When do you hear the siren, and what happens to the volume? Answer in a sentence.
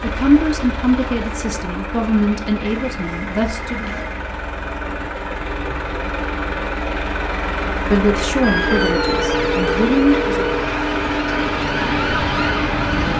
The siren can be heard from 8.4 to 13.1 s, getting quieter then louder.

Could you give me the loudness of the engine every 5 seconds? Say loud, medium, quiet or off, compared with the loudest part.
medium, loud, loud.